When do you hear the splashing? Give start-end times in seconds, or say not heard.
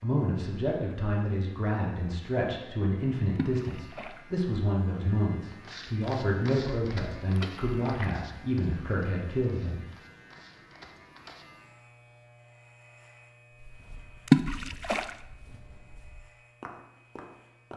3.4-4.2, 7.3-8.2, 14.2-15.2.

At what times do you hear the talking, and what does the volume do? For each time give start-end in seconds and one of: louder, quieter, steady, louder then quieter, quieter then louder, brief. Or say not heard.
0.0-9.8 steady.